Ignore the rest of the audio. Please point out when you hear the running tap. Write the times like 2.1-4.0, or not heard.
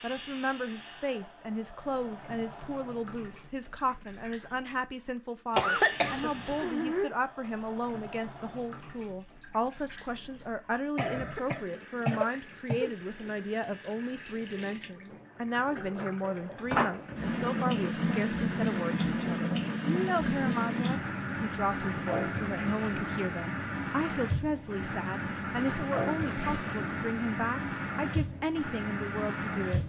0.0-29.8.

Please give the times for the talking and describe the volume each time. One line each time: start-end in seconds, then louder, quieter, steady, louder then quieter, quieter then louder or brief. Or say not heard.
0.0-29.8 steady.